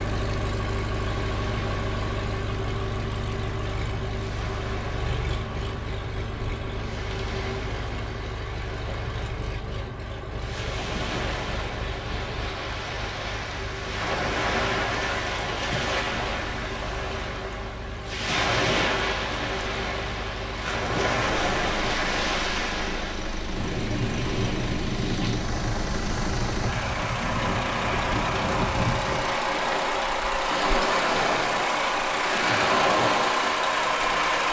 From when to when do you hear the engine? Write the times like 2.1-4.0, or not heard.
0.0-34.4.